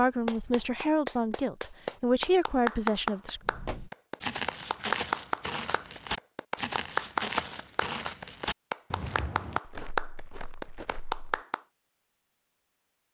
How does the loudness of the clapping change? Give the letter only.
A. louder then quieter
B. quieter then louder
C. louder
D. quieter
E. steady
E.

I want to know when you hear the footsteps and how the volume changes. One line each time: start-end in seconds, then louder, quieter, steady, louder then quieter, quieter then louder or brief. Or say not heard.
3.4-11.4 quieter.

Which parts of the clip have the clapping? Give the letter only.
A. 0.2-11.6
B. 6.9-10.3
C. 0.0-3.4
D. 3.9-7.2
A.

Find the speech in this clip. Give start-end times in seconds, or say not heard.
0.0-3.4.